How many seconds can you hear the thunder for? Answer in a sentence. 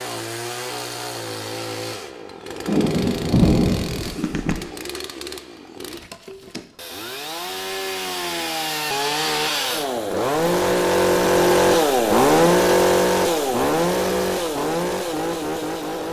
You can hear the thunder for 2 seconds altogether.